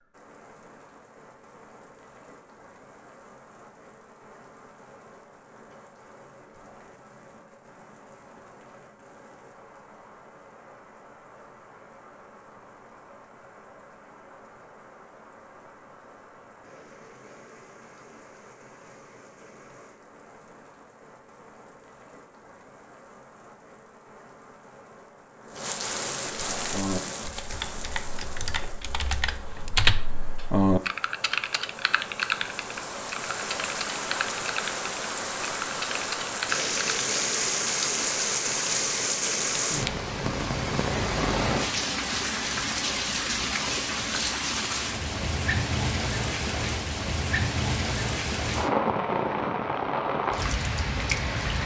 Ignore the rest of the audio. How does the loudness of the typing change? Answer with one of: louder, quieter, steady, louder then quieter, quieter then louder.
louder then quieter.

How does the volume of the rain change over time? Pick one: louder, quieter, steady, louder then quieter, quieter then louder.
louder.